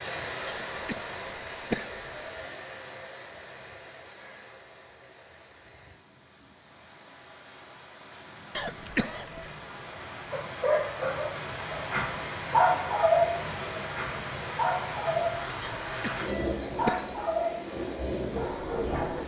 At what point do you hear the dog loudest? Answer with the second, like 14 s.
13 s.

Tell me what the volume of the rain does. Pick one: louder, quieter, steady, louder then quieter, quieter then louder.
quieter then louder.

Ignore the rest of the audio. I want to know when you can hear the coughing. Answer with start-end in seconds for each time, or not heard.
0.5-2.0, 8.6-9.5, 15.6-17.1.